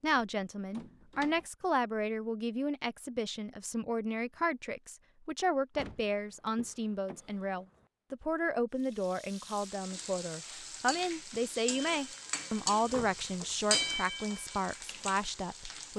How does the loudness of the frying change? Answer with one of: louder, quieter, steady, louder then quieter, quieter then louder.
louder then quieter.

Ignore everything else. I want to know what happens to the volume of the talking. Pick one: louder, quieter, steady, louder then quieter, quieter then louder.
steady.